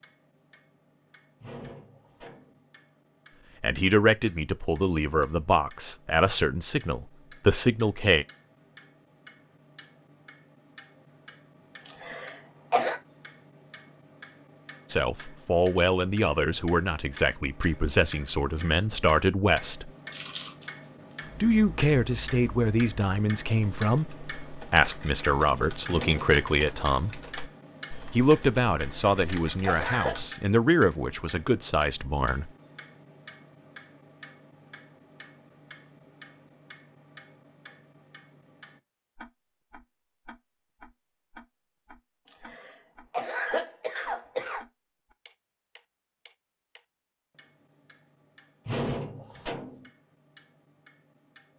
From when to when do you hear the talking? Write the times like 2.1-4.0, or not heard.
3.6-8.2, 14.8-19.9, 21.4-27.1, 28.1-32.5.